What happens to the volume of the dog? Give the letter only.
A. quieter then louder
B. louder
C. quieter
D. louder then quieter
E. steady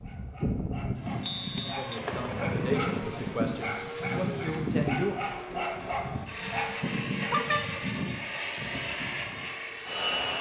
B.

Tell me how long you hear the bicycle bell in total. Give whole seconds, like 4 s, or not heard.
2 s.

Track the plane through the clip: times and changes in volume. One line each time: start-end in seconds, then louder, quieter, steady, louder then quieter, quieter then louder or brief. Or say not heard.
0.0-10.3 steady.